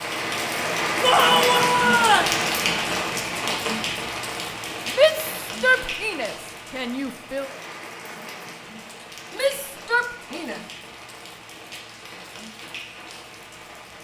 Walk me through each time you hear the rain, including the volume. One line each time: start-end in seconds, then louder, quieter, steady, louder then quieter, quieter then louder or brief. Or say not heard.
0.0-13.9 quieter.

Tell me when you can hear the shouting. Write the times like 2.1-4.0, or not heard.
1.0-2.4, 5.0-7.5, 9.3-10.7.